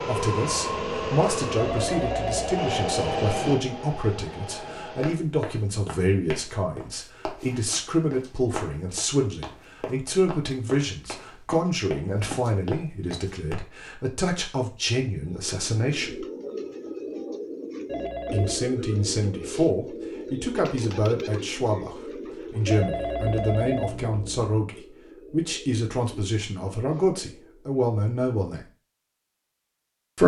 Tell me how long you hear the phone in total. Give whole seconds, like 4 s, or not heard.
4 s.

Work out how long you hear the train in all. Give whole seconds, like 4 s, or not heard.
5 s.